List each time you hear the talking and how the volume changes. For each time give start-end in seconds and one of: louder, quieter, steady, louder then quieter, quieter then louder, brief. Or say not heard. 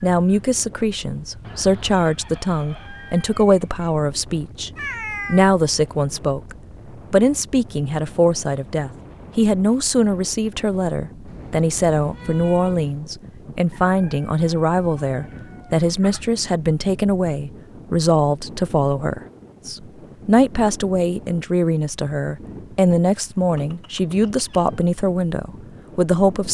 0.0-26.5 steady.